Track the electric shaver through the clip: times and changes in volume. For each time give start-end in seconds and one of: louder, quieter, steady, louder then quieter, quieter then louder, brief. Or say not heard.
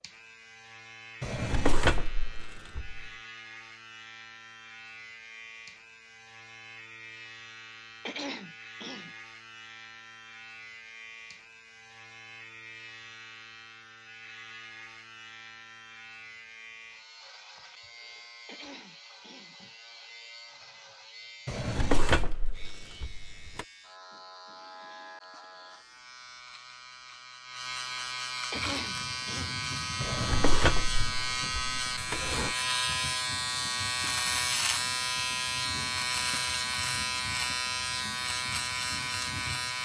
0.0-39.8 louder.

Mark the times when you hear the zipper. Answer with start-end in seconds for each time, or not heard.
not heard.